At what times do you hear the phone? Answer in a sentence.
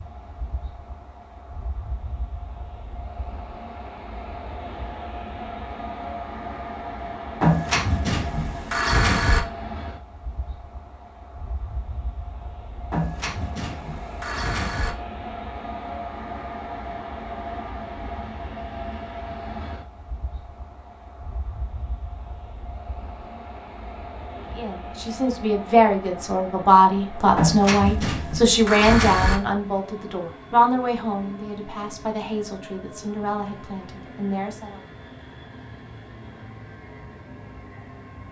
You can hear the phone from 7.4 to 9.4 s, from 12.9 to 14.9 s and from 27.4 to 29.4 s.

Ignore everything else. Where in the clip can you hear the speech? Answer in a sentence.
You can hear the speech from 24.4 to 34.8 s.